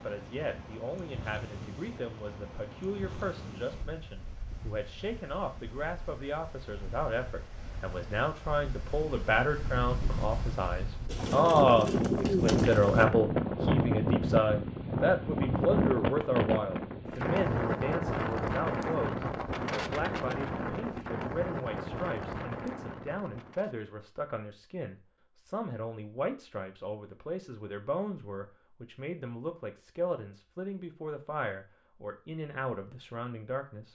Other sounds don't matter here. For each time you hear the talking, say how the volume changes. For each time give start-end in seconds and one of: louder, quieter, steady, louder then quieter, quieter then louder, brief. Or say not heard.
0.0-33.9 louder then quieter.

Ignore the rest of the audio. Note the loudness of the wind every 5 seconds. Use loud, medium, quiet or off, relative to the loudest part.
quiet, quiet, loud, loud, medium, off, off.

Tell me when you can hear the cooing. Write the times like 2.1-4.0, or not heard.
11.1-13.1.